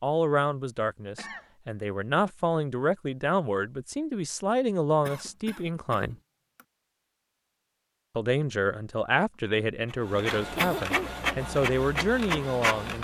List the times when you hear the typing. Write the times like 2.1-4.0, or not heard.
not heard.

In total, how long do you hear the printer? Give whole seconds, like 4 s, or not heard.
3 s.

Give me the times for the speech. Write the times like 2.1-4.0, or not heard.
0.0-6.2, 8.2-12.9.